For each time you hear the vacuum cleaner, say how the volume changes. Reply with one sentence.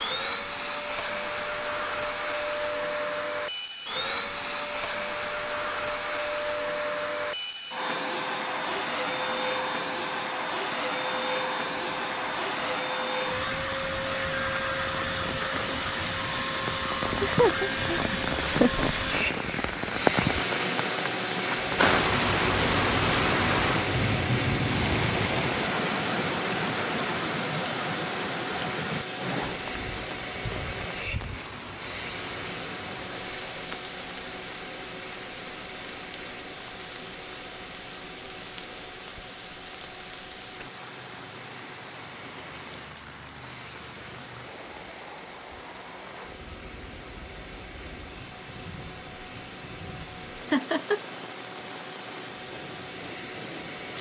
You can hear the vacuum cleaner from 0.0 to 53.9 s, getting quieter.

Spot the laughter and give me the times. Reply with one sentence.
The laughter can be heard from 17.1 to 18.9 s and from 50.5 to 51.0 s.